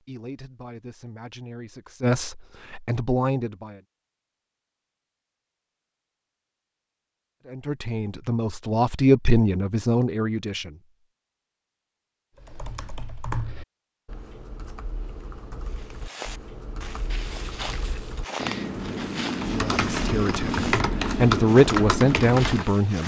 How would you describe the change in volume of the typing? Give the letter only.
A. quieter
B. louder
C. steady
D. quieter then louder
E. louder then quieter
D.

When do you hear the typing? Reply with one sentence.
The typing can be heard from 12.3 to 22.7 s.